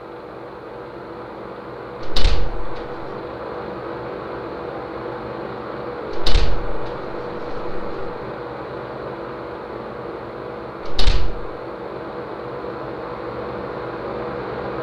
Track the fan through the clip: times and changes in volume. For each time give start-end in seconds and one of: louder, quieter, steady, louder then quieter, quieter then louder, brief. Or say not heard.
0.0-14.7 steady.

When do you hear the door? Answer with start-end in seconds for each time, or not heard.
2.0-3.0, 6.1-8.1, 10.8-11.4.